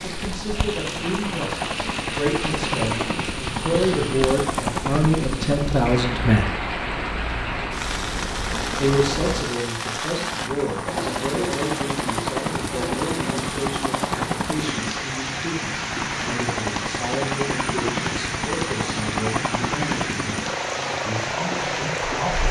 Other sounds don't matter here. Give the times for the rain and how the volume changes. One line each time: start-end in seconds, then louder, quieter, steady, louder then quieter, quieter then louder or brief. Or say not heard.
0.0-22.4 steady.